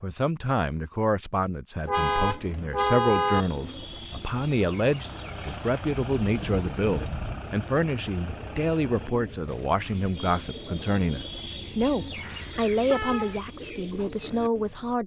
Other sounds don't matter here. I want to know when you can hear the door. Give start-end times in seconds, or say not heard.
not heard.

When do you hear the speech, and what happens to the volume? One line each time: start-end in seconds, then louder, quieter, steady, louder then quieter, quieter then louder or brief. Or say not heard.
0.0-15.0 steady.